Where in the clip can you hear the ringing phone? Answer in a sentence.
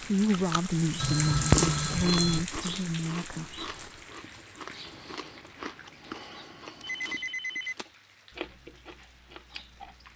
The ringing phone can be heard from 0.9 to 2.5 s and from 6.8 to 7.8 s.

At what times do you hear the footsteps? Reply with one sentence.
The footsteps can't be heard in this clip.